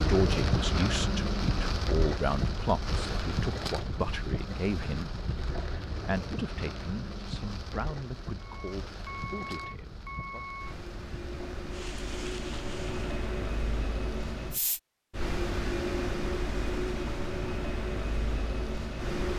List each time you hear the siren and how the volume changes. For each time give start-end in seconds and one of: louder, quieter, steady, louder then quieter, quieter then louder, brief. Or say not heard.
not heard.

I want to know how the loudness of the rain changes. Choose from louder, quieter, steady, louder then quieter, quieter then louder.
quieter.